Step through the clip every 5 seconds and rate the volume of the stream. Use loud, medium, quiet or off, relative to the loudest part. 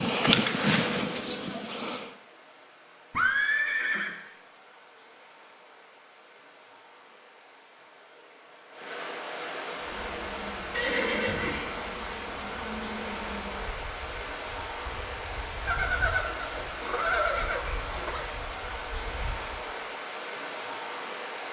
quiet, medium, loud, loud, loud.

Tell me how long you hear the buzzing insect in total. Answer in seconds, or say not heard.
12 s.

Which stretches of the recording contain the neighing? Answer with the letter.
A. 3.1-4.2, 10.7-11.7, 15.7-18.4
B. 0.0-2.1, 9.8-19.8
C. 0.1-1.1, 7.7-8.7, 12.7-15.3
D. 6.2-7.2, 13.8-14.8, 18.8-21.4
A.